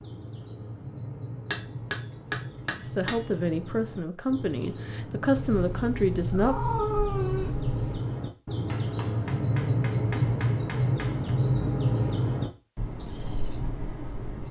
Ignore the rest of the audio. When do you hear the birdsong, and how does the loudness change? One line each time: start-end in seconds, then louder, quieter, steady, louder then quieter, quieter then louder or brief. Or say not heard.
0.0-14.4 louder.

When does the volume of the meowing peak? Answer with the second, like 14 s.
7 s.